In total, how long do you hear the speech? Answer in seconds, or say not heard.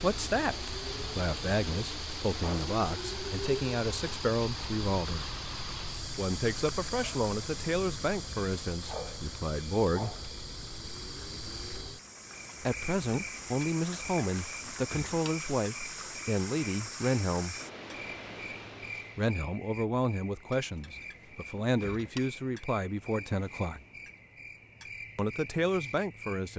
20 s.